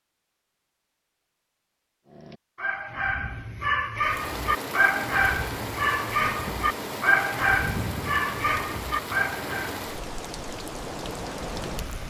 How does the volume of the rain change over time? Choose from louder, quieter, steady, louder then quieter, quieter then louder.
steady.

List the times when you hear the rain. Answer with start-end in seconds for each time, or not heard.
4.0-12.0.